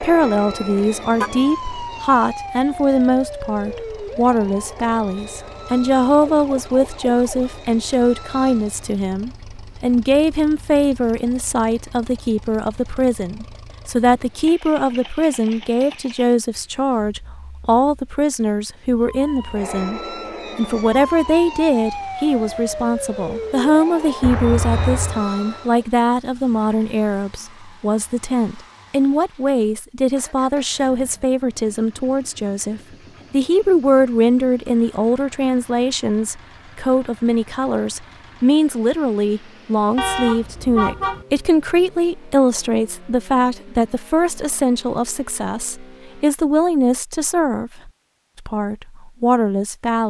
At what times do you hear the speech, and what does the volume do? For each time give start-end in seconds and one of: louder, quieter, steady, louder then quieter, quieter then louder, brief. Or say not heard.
0.0-50.0 steady.